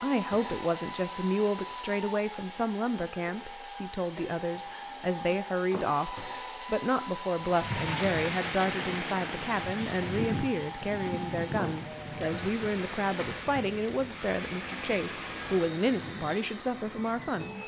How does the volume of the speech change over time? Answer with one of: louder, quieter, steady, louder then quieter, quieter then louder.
steady.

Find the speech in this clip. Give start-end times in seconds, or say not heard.
0.0-17.6.